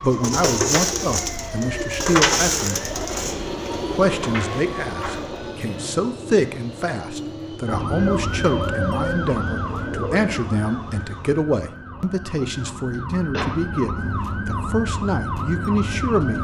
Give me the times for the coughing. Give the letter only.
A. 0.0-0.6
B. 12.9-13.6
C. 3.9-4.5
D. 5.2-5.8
B.